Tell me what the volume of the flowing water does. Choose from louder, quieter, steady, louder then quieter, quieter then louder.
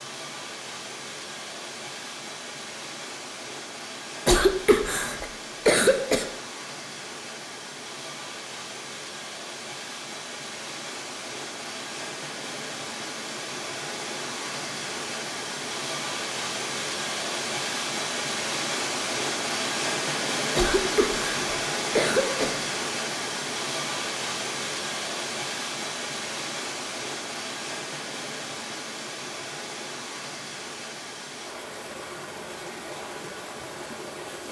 louder then quieter.